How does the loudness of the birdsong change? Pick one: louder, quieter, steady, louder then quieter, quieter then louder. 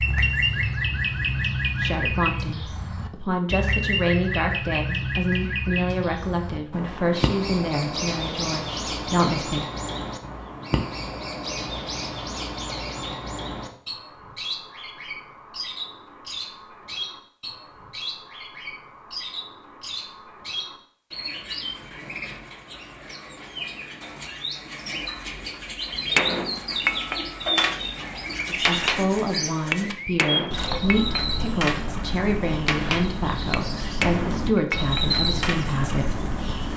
quieter then louder.